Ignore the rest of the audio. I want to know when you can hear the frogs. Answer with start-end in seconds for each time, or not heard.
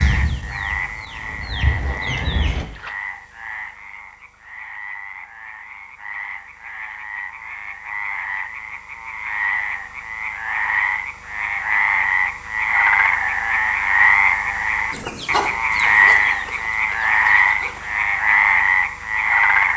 0.0-19.7.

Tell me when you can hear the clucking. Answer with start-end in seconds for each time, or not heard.
0.0-2.6, 14.9-17.9.